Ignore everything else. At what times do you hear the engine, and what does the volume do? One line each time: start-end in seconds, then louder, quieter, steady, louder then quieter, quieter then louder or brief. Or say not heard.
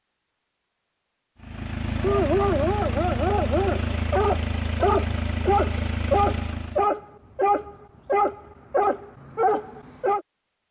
1.4-6.9 steady.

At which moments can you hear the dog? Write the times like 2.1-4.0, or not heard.
2.0-10.2.